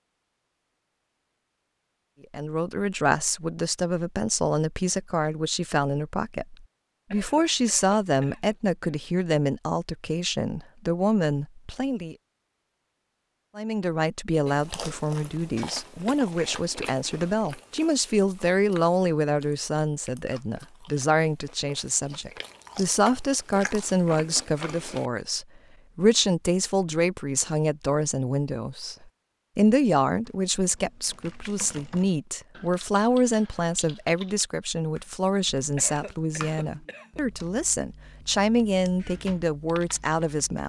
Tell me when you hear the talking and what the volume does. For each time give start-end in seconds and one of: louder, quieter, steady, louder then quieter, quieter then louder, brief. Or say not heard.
2.3-12.2 steady
13.6-40.6 steady.